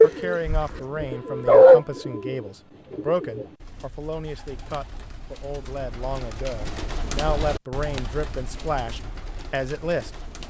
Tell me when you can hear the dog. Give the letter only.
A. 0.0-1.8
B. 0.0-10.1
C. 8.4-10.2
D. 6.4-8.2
A.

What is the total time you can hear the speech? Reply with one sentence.
You can hear the speech for 10 seconds altogether.